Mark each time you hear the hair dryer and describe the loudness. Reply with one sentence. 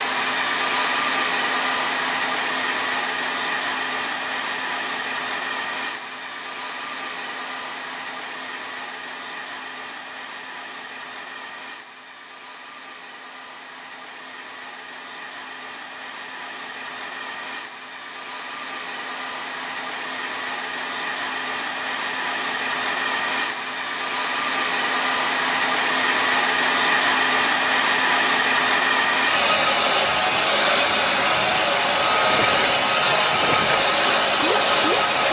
The hair dryer can be heard from 0.0 to 35.2 s, getting quieter then louder.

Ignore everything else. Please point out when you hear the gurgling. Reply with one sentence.
The gurgling can be heard from 32.1 to 35.2 s.